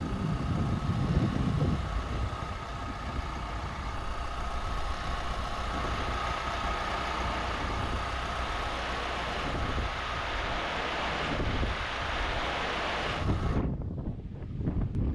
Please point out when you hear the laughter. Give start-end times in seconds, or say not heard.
not heard.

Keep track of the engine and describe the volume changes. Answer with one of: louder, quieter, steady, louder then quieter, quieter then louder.
louder then quieter.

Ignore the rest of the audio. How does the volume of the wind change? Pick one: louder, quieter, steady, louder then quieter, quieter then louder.
quieter then louder.